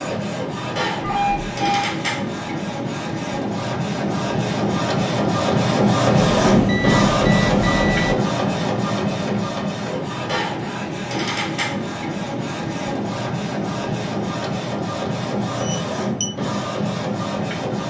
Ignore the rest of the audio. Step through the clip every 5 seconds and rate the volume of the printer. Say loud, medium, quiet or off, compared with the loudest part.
medium, loud, medium, medium.